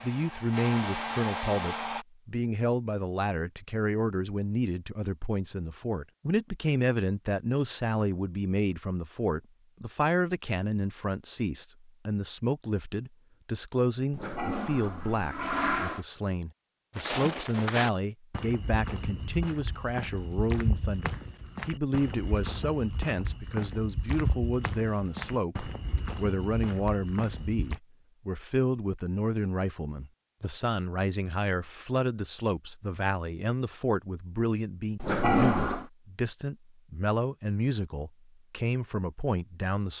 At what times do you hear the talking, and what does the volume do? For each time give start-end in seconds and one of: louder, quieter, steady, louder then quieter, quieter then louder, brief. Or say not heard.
0.0-39.9 steady.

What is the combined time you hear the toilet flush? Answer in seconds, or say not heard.
3 s.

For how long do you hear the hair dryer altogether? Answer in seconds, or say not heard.
2 s.